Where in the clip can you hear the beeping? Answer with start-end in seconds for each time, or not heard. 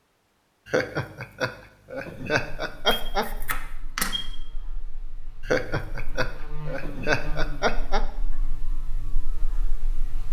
2.9-4.2.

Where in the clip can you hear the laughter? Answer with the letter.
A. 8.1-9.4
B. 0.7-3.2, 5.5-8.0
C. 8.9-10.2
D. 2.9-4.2
B.